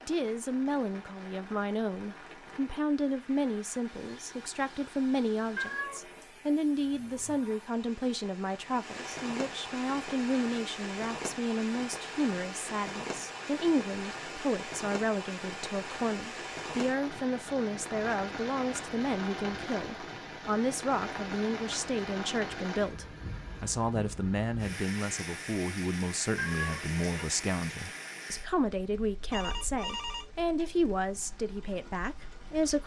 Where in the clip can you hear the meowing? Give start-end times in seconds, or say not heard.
5.5-6.3, 26.4-27.2.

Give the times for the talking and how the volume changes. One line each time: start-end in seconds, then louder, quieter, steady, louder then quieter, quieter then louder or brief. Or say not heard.
0.1-32.8 steady.